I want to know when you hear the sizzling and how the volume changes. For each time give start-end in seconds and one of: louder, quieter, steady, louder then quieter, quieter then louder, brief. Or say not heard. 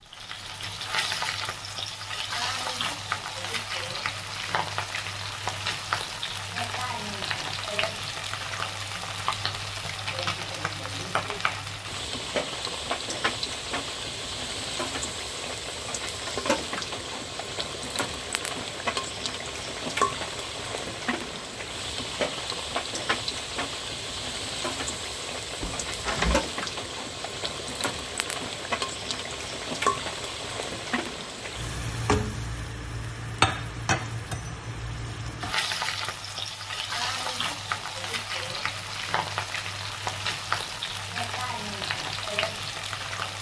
0.0-43.3 steady.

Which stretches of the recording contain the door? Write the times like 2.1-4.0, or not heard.
25.6-26.4.